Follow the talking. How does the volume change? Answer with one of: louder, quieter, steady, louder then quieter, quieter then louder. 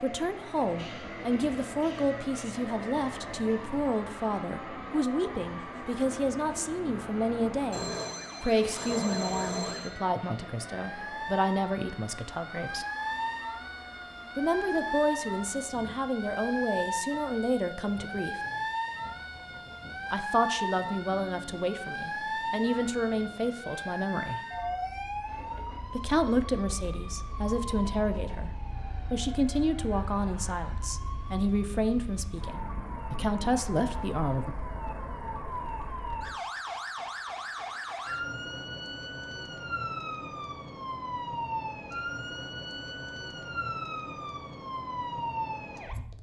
steady.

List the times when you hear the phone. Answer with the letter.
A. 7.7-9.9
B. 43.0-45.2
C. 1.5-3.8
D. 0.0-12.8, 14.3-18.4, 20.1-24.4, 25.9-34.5
A.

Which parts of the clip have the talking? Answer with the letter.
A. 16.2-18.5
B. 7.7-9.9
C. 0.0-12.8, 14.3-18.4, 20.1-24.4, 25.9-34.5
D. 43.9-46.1
C.